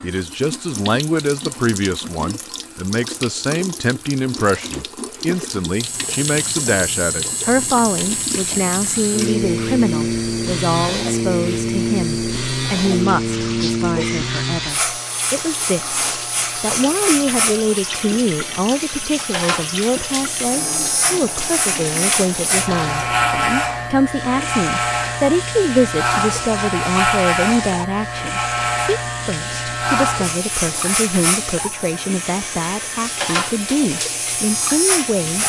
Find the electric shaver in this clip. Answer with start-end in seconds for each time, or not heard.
5.7-35.4.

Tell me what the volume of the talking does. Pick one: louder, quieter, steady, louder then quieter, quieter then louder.
steady.